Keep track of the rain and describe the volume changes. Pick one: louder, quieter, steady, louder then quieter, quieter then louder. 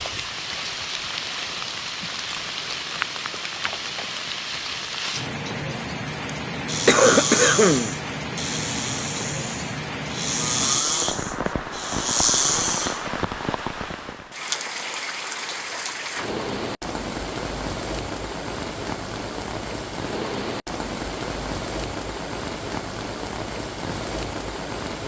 steady.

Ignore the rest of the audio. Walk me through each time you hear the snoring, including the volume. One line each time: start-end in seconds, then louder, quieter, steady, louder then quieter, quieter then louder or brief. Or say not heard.
6.7-13.1 quieter then louder.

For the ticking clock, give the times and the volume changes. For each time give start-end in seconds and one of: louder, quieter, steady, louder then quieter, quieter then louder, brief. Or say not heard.
not heard.